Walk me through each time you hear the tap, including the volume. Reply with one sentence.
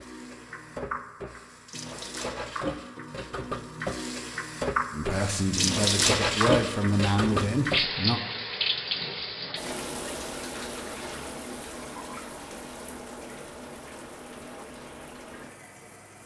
The tap can be heard from 0.0 to 16.2 s, getting louder then quieter.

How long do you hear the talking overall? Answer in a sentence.
You can hear the talking for 3 seconds altogether.